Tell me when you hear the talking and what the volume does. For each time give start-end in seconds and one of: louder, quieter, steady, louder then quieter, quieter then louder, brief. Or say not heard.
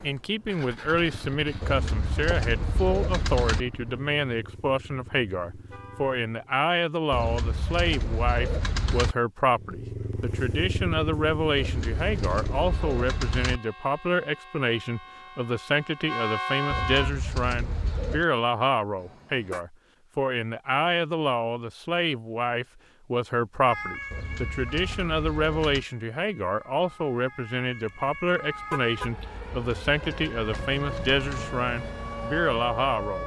0.0-33.2 steady.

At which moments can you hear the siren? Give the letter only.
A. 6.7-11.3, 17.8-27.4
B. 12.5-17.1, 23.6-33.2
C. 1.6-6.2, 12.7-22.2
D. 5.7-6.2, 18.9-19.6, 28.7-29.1
B.